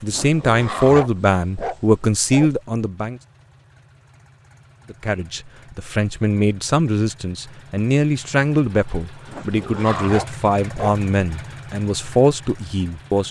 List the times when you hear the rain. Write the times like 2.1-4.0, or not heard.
not heard.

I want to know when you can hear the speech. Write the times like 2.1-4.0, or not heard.
0.0-3.2, 4.9-13.2.